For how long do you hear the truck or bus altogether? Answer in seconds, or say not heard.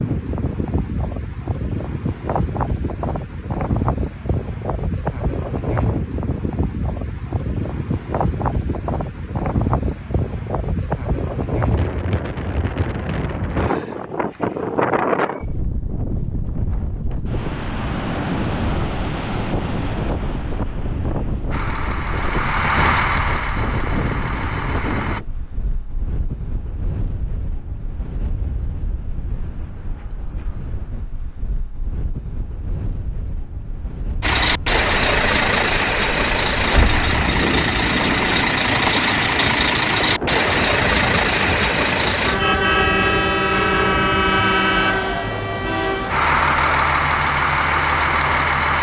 18 s.